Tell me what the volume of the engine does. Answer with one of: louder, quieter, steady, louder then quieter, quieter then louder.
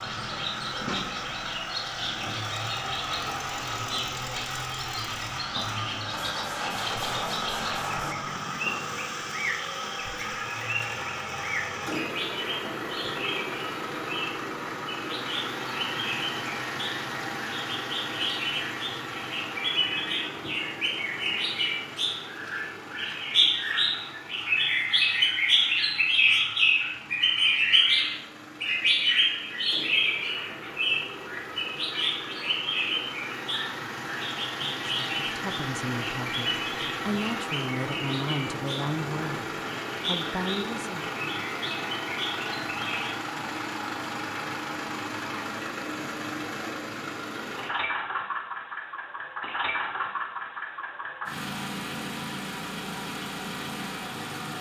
quieter then louder.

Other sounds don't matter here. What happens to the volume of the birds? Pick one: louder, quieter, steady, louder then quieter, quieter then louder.
louder then quieter.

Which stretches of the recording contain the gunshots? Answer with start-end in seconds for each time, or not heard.
6.1-8.2.